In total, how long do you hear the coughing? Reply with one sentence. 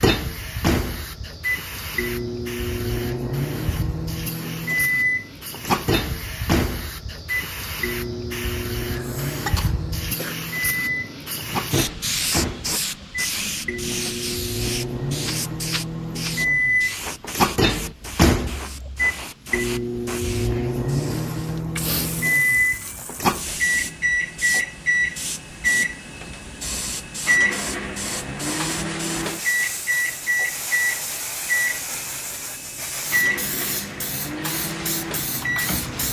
The coughing can be heard for 2 seconds in total.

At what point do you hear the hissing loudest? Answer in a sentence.
The volume of the hissing peaks at 12 seconds.